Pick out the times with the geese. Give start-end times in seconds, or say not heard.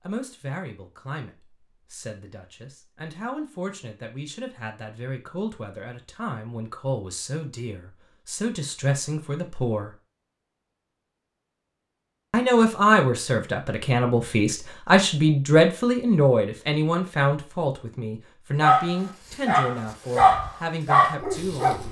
not heard.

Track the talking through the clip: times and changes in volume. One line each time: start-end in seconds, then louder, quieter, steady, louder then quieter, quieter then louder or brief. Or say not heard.
0.1-9.9 louder
12.3-21.8 quieter.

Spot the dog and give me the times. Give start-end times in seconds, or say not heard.
18.6-21.8.